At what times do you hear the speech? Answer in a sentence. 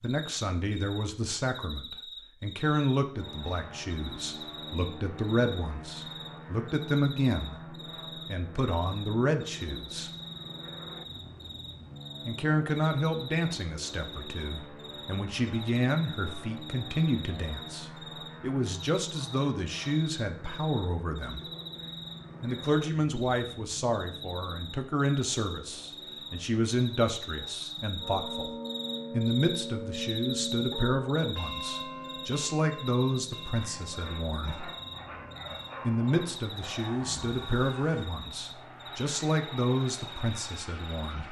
You can hear the speech from 0.0 to 10.1 s, from 12.2 to 21.4 s, from 22.4 to 28.5 s, from 29.1 to 34.7 s and from 35.8 to 41.2 s.